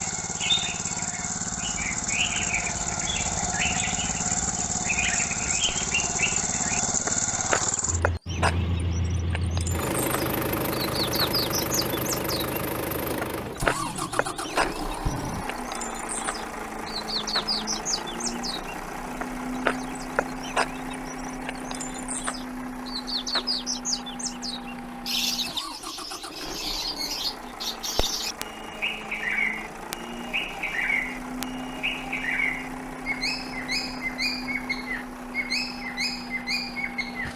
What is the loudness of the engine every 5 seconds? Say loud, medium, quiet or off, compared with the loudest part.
loud, loud, loud, medium, medium, medium, medium, medium.